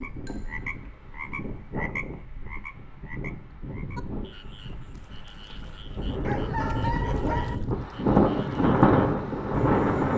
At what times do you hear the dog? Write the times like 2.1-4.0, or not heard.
6.2-7.6.